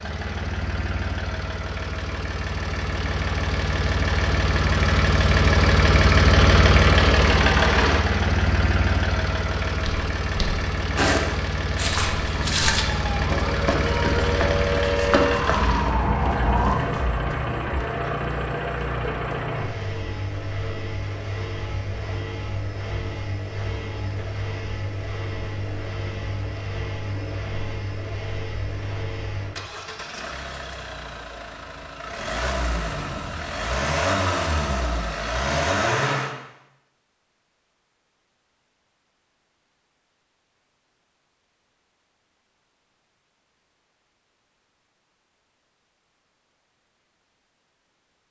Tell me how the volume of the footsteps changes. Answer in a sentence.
The loudness of the footsteps goes down.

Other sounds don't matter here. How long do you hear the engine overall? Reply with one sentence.
The engine can be heard for 36 seconds in total.